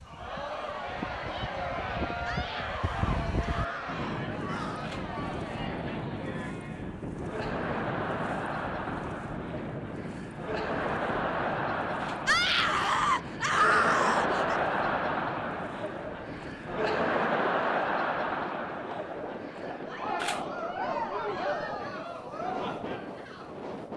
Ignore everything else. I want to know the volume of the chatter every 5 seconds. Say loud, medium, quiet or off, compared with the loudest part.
medium, medium, loud, loud, loud.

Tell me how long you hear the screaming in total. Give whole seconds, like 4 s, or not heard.
5 s.